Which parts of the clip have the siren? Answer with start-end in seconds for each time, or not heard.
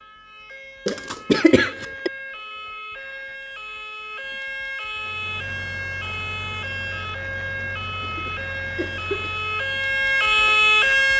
0.0-11.1.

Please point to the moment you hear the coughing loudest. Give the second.
1 s.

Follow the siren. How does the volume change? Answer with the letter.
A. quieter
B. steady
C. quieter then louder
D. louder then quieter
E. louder
E.